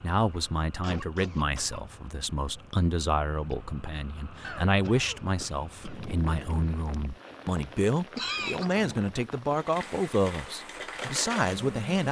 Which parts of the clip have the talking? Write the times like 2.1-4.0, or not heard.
0.0-12.0.